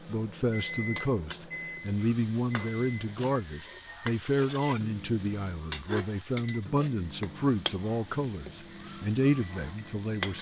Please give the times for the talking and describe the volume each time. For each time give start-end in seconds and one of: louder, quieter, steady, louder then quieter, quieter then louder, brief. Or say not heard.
0.1-10.3 steady.